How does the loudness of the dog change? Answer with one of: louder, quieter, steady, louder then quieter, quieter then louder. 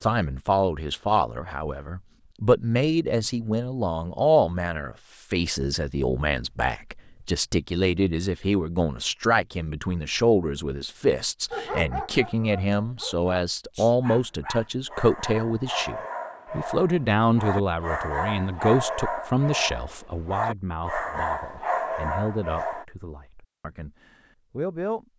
louder.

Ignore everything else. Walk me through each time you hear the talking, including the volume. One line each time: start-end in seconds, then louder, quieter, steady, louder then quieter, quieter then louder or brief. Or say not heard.
0.0-25.1 quieter.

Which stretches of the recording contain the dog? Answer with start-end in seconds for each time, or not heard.
11.5-22.9.